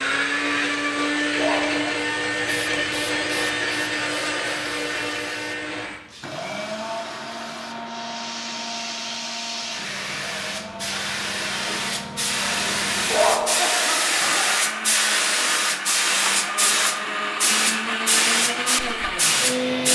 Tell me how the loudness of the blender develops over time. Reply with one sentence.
The volume of the blender goes down, then up.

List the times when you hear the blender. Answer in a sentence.
You can hear the blender from 0.0 to 19.9 s.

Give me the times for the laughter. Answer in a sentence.
You can hear the laughter from 1.3 to 2.0 s and from 13.1 to 14.3 s.